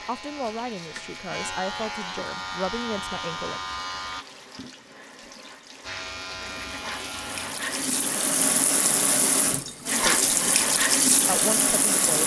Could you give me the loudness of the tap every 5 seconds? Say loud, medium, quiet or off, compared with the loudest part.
quiet, medium, loud.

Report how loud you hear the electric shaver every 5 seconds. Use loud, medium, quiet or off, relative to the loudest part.
loud, loud, off.